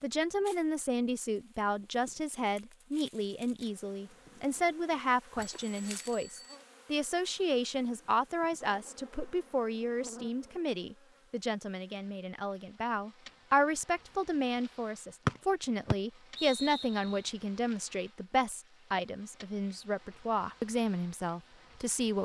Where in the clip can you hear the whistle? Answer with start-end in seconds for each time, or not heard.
15.2-17.1.